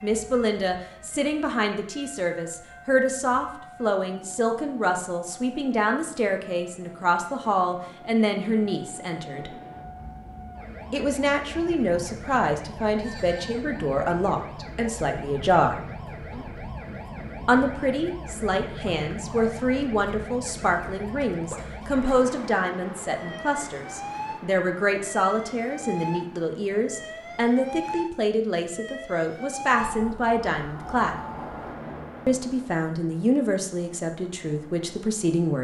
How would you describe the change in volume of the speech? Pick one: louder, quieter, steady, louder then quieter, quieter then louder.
steady.